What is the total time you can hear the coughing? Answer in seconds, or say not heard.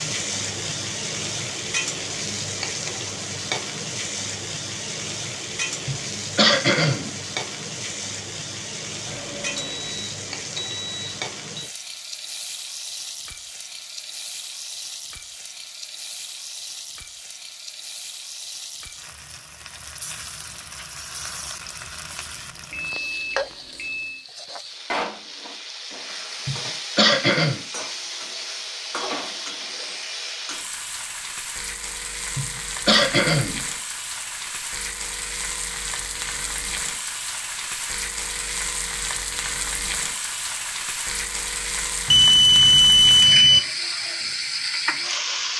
4 s.